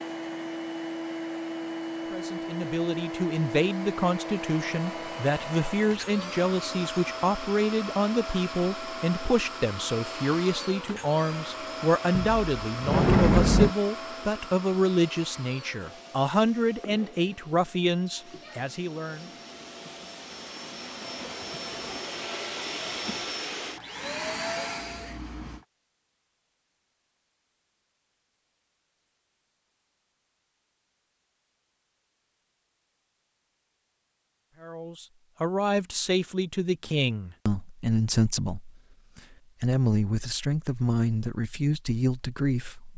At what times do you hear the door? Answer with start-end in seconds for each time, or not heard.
12.2-13.8.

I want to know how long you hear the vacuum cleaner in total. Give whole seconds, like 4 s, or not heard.
26 s.